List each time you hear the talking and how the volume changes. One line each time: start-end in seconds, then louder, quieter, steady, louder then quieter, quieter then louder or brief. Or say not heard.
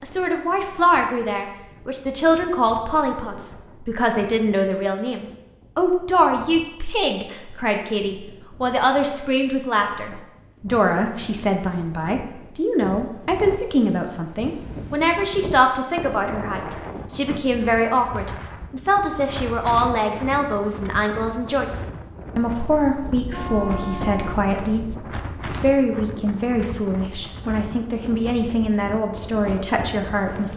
0.0-30.5 steady.